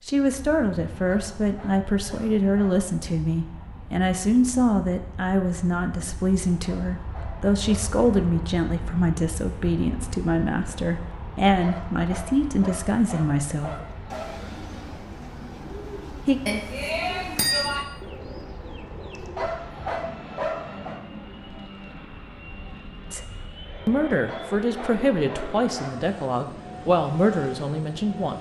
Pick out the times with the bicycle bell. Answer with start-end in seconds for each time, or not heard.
16.4-17.8.